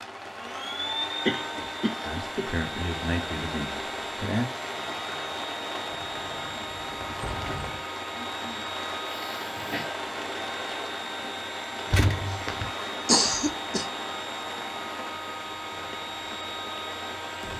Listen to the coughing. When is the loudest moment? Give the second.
13 s.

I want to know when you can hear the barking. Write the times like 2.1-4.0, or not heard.
not heard.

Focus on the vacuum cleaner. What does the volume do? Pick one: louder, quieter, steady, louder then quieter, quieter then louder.
steady.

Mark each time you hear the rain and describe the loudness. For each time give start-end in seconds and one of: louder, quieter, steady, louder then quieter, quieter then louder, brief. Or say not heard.
0.0-17.5 steady.